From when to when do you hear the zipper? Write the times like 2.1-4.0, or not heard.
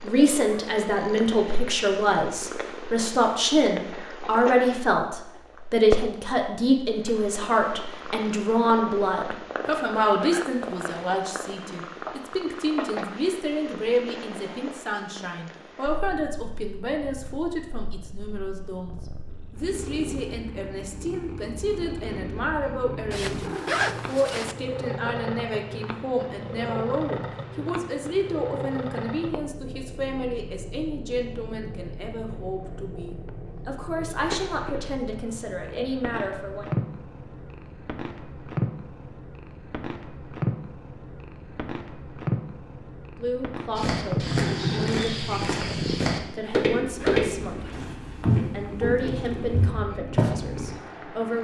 9.6-11.1, 23.1-24.6, 46.4-47.9.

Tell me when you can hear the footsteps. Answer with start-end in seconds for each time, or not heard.
43.8-50.4.